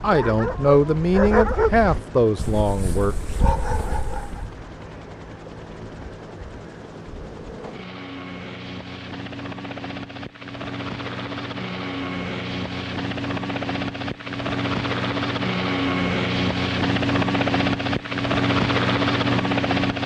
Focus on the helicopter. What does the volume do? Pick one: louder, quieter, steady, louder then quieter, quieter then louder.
louder.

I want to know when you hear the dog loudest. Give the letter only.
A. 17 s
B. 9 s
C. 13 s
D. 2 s
D.